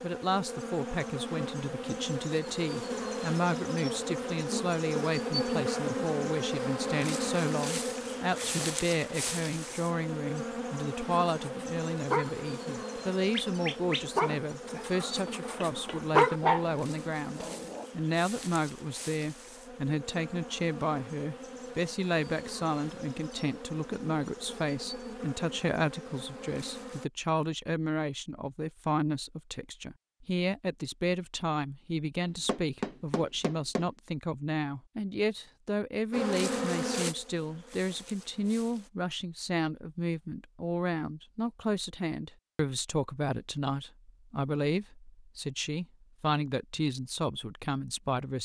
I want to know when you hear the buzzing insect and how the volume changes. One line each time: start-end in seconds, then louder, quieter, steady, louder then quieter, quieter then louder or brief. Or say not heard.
0.0-27.1 quieter
36.1-38.9 brief.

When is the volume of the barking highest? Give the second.
16 s.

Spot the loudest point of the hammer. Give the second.
33 s.